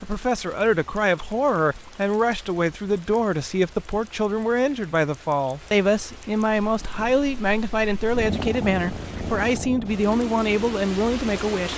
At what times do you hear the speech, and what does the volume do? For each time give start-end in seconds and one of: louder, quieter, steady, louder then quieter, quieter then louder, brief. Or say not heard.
0.0-11.7 steady.